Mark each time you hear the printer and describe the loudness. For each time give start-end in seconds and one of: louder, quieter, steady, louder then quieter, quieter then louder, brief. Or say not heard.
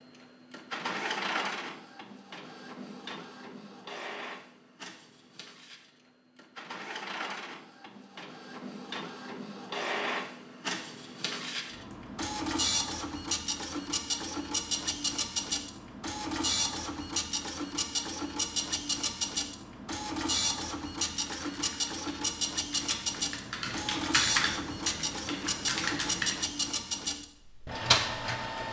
0.0-28.6 louder.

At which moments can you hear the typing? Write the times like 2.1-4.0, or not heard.
21.2-26.4.